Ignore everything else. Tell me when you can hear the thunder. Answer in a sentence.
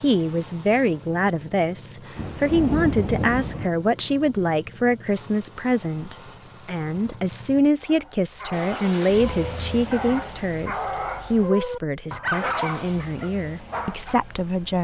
You can hear the thunder from 2.1 to 3.7 s.